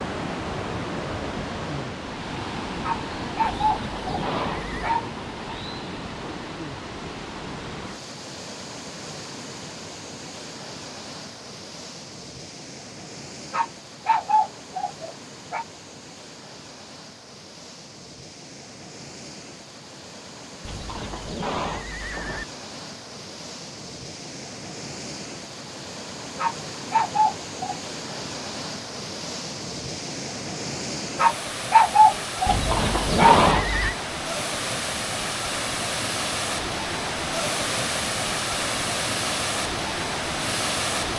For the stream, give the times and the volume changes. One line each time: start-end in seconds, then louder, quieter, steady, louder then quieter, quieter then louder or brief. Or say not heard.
0.0-41.1 quieter then louder.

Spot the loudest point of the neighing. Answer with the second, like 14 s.
33 s.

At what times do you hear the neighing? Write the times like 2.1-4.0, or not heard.
3.5-5.0, 20.6-22.4, 32.5-34.0.